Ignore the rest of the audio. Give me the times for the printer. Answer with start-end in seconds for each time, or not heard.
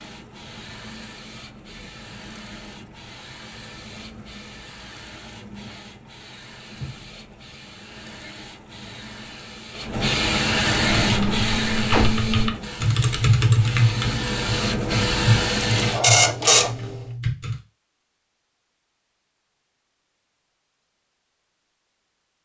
0.0-17.0.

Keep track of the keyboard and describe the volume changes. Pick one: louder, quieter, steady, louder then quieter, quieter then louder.
quieter.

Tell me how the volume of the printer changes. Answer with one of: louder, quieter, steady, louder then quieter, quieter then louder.
louder.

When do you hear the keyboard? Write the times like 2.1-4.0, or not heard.
11.0-17.6.